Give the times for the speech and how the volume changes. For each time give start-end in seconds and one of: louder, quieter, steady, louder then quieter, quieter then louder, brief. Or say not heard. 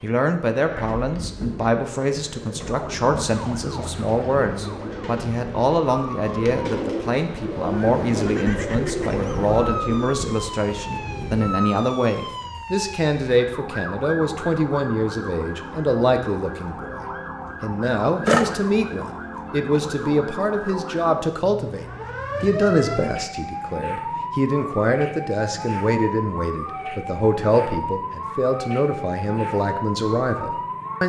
0.0-31.0 steady.